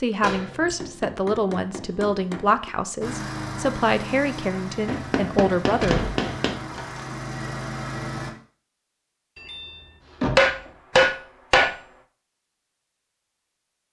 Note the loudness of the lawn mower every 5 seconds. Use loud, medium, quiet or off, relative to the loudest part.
loud, loud, off.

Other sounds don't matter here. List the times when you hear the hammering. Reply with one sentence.
You can hear the hammering from 0.8 to 2.7 s, from 4.8 to 6.5 s and from 10.3 to 11.8 s.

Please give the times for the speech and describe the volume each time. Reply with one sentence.
The speech can be heard from 0.0 to 6.0 s, at a steady volume.